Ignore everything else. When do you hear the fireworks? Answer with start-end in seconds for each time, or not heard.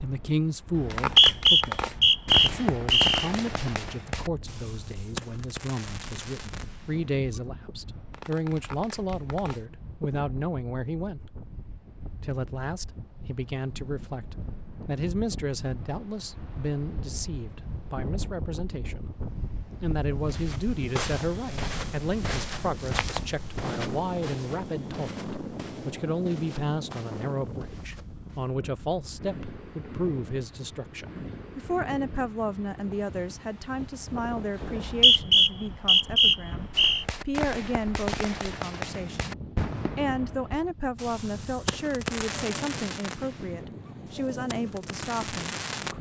0.9-10.1, 36.7-45.9.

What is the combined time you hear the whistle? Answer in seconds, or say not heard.
5 s.